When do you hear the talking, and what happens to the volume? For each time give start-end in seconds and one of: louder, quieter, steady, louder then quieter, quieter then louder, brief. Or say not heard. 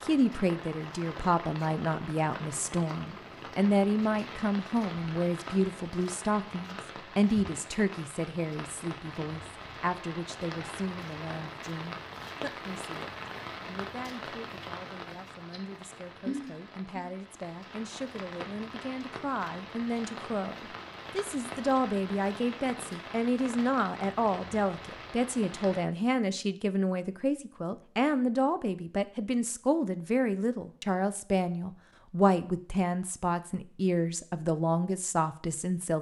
0.0-35.9 quieter then louder.